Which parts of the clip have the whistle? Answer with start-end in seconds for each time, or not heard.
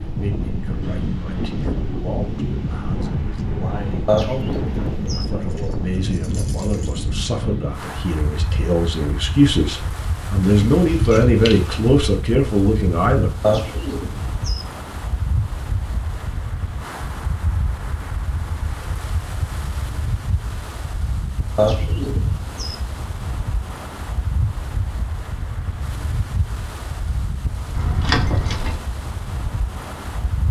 not heard.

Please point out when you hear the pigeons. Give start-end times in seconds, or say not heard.
4.0-5.2, 13.4-14.7, 21.6-22.8.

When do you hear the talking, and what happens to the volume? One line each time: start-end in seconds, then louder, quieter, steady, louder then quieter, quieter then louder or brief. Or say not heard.
0.0-13.3 louder.